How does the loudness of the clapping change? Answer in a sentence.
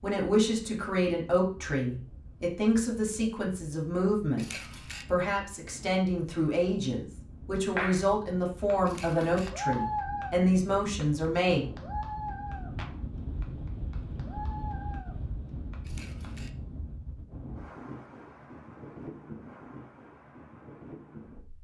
The loudness of the clapping goes down, then up.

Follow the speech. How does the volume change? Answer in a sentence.
The loudness of the speech stays about the same.